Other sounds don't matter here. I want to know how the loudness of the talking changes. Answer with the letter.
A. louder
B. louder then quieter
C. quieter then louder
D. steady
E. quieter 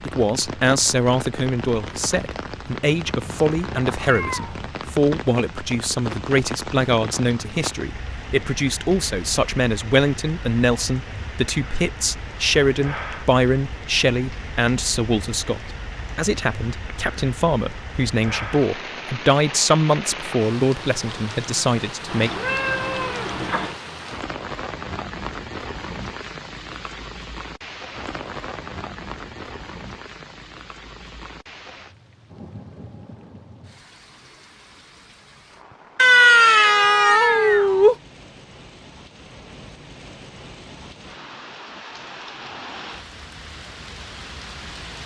D.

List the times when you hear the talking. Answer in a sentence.
The talking can be heard from 0.0 to 22.3 s.